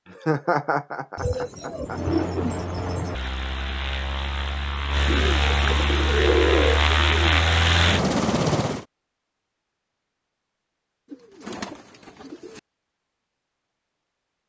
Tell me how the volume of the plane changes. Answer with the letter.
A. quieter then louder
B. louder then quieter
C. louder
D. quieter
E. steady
C.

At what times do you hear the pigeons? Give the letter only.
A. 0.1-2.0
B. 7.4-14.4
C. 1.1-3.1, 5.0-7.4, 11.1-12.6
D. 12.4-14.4
C.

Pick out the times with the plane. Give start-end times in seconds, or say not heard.
1.9-8.8.